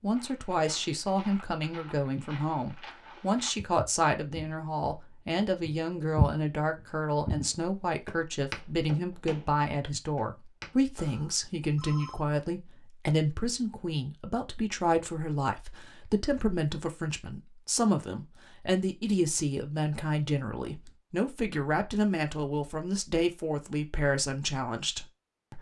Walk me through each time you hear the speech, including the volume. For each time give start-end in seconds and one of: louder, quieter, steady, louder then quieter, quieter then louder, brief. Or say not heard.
0.0-25.5 steady.